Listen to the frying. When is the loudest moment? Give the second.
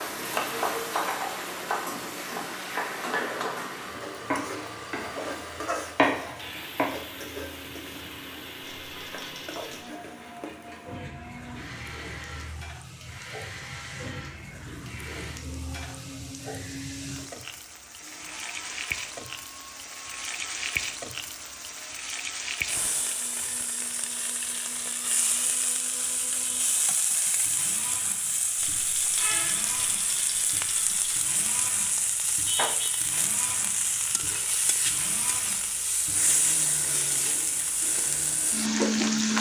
39 s.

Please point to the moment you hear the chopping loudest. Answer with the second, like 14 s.
6 s.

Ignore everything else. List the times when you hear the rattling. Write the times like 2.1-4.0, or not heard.
8.6-9.9, 28.6-31.1.